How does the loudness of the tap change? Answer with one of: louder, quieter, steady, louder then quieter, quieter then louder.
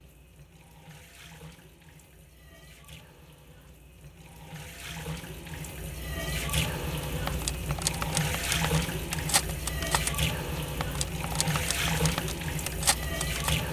louder.